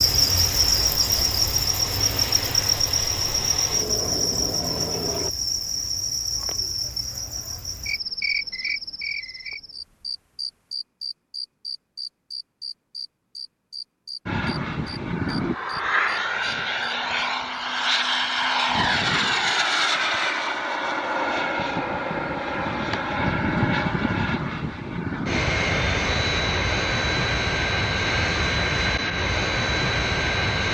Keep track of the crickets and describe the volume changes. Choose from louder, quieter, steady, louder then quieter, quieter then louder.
quieter.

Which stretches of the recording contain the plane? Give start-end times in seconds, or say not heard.
0.0-5.3, 14.2-30.6.